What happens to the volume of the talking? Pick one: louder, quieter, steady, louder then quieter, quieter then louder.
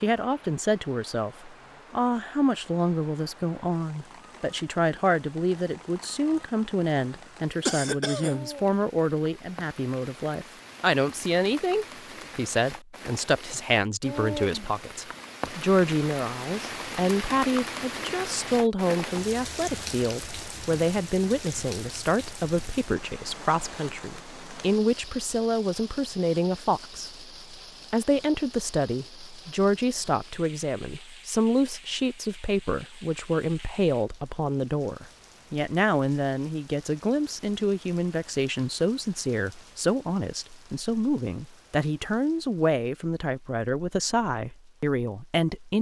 steady.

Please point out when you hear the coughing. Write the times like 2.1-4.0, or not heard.
7.7-8.4.